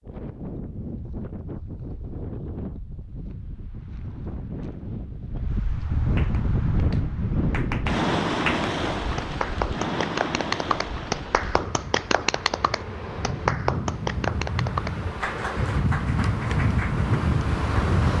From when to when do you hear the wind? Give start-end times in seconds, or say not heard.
0.0-18.1.